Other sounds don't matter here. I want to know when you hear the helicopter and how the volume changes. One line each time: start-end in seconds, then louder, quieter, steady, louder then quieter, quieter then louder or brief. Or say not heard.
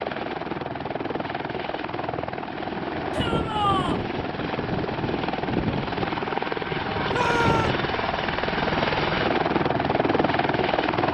0.0-11.0 louder.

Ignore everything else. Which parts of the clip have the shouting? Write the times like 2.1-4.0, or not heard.
3.1-4.0, 7.1-7.7.